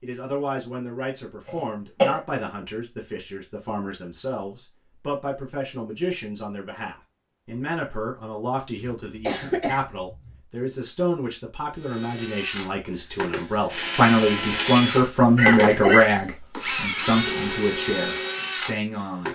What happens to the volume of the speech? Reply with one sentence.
The volume of the speech goes up.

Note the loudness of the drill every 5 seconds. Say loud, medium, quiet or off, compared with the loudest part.
off, off, loud, loud.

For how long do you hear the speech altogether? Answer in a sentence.
The speech can be heard for 19 seconds in total.